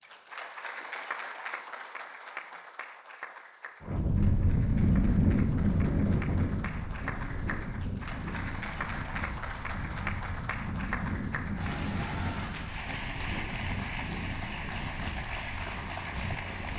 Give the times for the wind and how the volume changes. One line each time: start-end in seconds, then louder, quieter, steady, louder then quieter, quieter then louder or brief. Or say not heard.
3.8-16.7 quieter.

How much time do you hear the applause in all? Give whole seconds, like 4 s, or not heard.
17 s.